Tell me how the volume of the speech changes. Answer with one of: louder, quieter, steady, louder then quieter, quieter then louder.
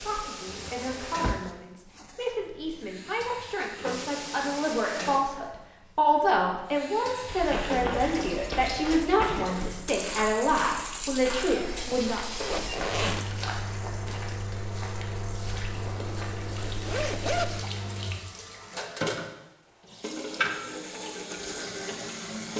louder.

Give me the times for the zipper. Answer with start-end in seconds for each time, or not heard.
0.5-2.9, 12.4-13.3, 15.8-17.4.